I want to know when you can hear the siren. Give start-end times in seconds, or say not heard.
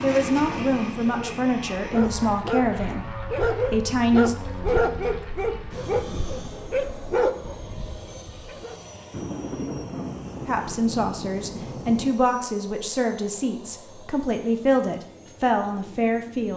not heard.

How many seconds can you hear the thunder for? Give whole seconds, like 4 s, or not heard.
3 s.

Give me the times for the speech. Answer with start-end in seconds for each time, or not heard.
0.0-4.3, 10.4-16.5.